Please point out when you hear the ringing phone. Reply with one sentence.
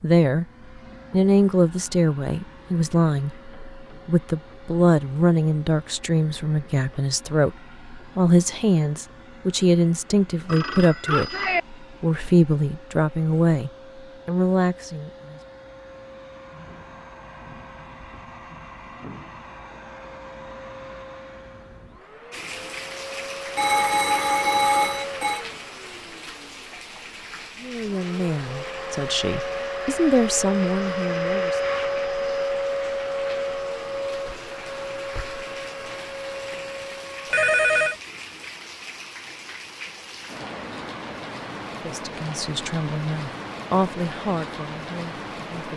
The ringing phone can be heard from 10.4 to 11.6 s, from 23.6 to 25.4 s and from 37.3 to 38.0 s.